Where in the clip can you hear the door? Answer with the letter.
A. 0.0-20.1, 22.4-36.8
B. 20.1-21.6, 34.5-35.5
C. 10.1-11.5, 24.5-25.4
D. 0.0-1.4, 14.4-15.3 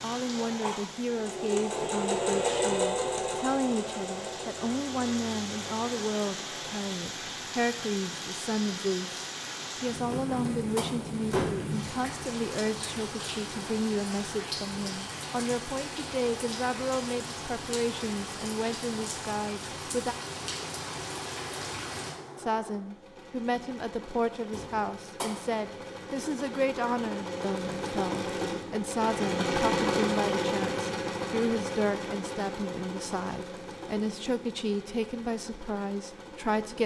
C.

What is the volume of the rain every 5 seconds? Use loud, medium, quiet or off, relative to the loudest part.
medium, loud, loud, loud, loud, off, off, off.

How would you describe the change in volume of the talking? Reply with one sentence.
The loudness of the talking stays about the same.